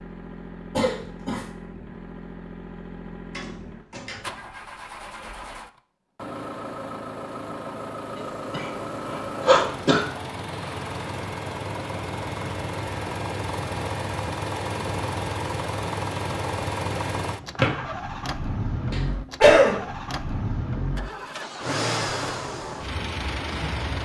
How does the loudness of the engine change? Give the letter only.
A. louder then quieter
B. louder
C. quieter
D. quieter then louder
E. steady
B.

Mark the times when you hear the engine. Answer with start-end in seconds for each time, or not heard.
0.0-24.0.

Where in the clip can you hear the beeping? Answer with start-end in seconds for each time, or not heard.
not heard.